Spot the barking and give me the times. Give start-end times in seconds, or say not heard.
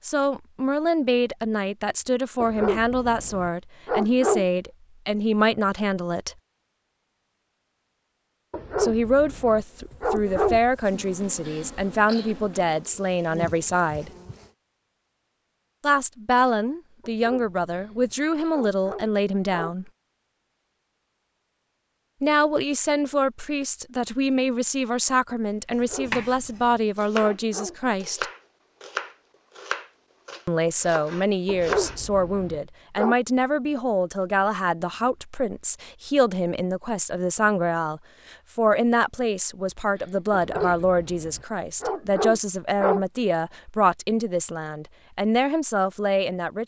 2.4-4.5, 8.5-10.6, 17.0-19.8, 25.7-28.2, 31.4-33.1, 40.3-43.0.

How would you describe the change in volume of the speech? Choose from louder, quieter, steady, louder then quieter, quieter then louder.
steady.